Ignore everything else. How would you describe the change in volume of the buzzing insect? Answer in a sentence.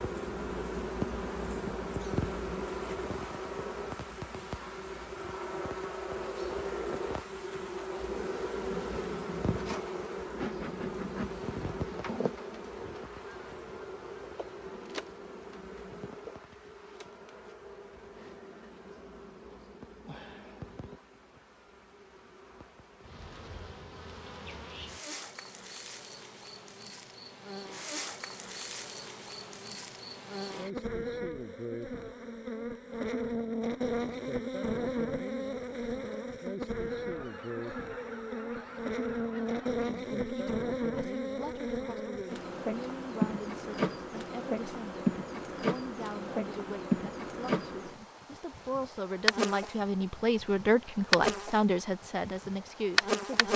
The volume of the buzzing insect goes down, then up.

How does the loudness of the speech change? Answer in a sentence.
The loudness of the speech goes up.